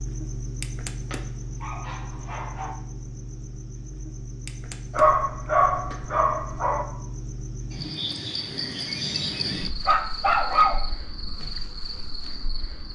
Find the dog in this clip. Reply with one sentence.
You can hear the dog from 1.1 to 2.8 s, from 5.0 to 6.8 s and from 9.8 to 10.8 s.